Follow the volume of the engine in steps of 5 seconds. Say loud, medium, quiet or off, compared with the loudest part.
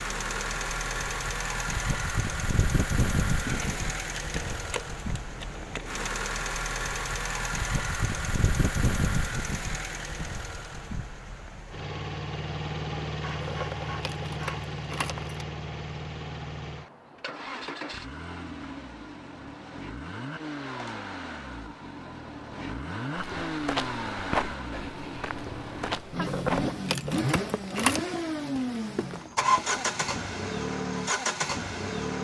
loud, loud, medium, medium, medium, loud, loud.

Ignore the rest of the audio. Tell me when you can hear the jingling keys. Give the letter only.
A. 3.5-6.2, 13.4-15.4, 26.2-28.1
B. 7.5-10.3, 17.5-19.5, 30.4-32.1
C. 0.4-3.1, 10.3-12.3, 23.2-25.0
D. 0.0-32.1
A.